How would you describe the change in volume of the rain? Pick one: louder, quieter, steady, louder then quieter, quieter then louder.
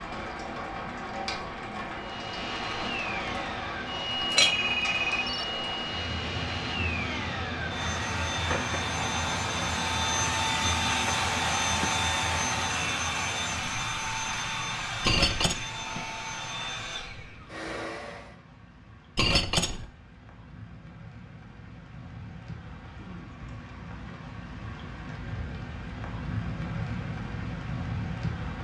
quieter then louder.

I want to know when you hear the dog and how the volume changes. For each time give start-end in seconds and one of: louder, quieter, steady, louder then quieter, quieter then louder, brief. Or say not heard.
not heard.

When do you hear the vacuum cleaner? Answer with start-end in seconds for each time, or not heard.
1.9-18.4.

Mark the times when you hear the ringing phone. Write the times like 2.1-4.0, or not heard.
4.4-5.5.